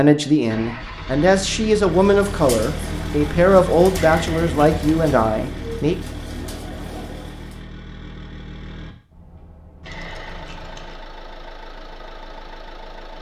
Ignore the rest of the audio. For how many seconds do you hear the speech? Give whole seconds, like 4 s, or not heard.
6 s.